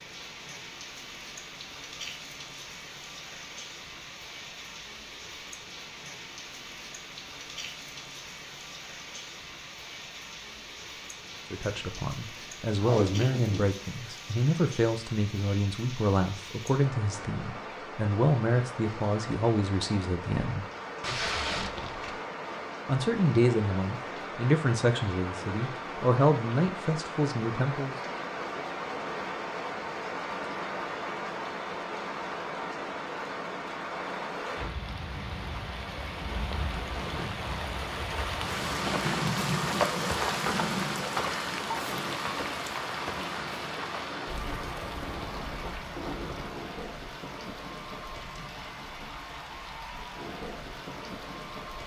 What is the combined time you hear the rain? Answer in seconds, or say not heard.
52 s.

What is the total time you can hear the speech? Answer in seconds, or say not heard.
14 s.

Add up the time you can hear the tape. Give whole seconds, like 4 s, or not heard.
3 s.